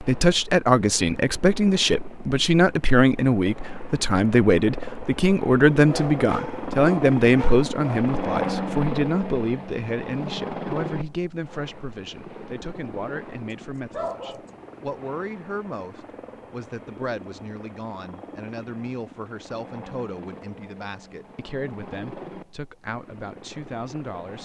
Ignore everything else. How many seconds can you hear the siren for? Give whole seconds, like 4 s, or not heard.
not heard.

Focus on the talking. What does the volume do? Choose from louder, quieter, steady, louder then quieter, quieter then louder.
quieter.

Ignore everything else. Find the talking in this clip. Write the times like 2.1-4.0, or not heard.
0.0-24.3.